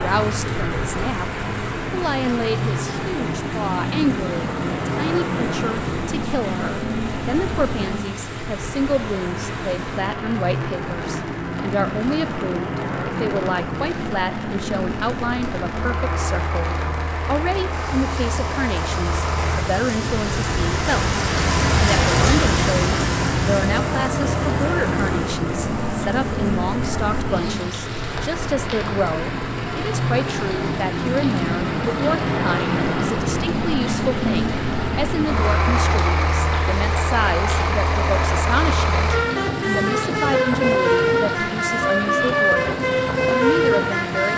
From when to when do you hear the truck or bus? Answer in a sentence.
You can hear the truck or bus from 0.0 to 44.3 s.